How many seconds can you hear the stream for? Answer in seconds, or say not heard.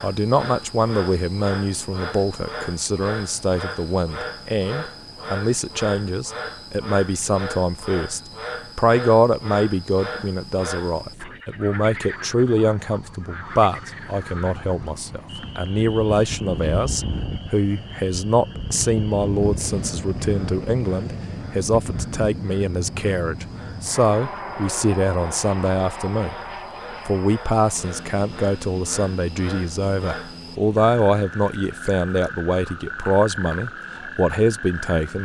not heard.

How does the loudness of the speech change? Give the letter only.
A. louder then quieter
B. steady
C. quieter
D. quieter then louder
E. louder
B.